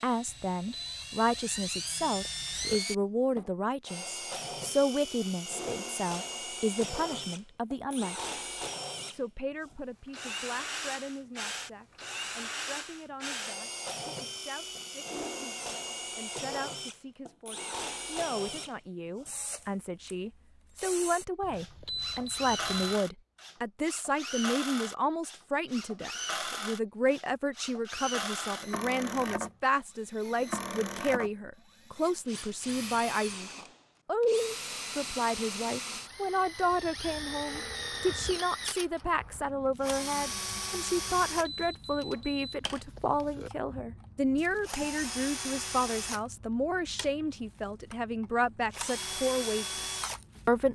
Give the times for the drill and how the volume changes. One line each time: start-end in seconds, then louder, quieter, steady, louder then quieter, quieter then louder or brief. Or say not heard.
0.0-50.7 steady.